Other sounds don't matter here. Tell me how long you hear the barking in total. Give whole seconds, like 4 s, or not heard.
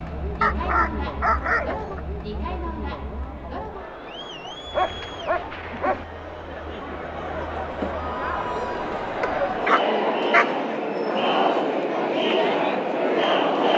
4 s.